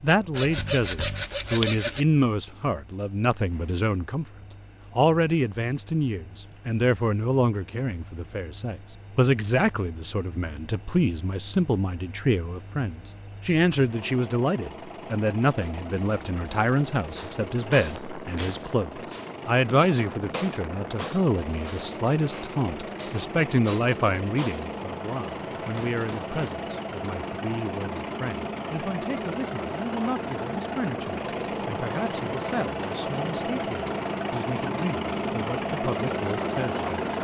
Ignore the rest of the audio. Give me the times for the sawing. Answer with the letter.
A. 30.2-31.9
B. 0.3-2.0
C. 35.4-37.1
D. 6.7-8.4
B.